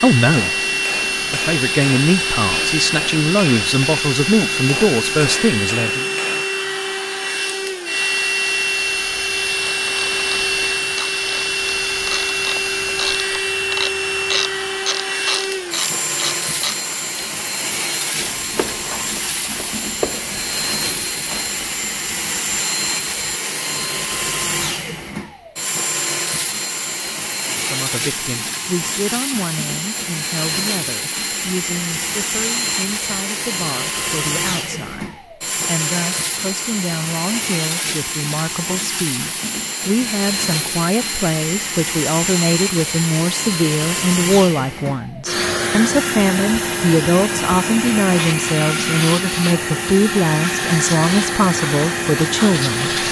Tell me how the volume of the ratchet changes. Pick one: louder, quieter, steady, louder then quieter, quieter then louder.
louder then quieter.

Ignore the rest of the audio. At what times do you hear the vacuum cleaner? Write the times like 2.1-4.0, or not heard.
0.0-53.0.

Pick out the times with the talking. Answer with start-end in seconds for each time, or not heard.
0.0-0.6, 1.3-6.1, 27.5-52.9.